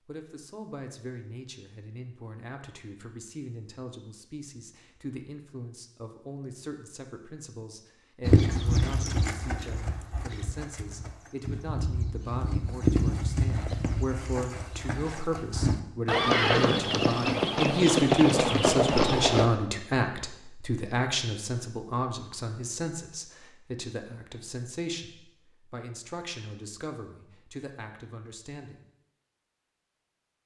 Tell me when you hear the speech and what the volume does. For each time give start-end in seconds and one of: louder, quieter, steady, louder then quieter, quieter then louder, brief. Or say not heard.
0.1-28.8 louder then quieter.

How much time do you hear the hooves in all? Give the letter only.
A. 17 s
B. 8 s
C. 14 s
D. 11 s
D.